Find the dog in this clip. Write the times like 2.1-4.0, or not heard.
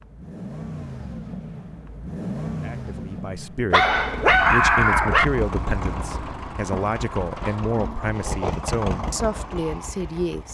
3.7-5.2.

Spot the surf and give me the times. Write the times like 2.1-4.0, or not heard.
not heard.